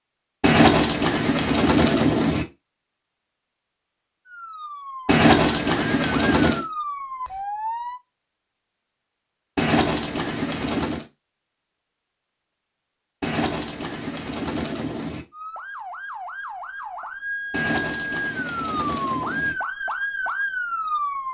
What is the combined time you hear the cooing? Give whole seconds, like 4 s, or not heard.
9 s.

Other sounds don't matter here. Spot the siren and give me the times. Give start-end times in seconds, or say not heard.
4.2-8.0, 15.3-21.2.